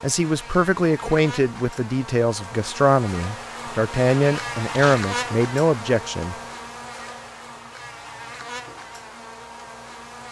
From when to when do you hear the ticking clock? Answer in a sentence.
The ticking clock can't be heard in this clip.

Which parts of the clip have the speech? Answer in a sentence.
The speech can be heard from 0.0 to 6.3 s.